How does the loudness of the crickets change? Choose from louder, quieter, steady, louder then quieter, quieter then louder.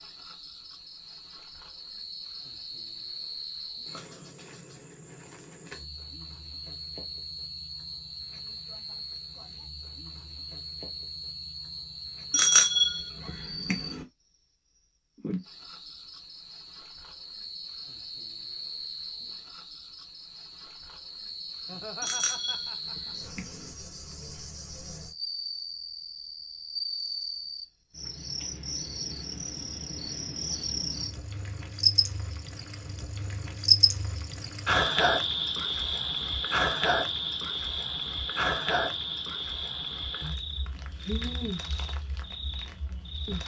louder.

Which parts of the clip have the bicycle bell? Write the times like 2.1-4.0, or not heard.
12.3-14.0, 22.0-23.7.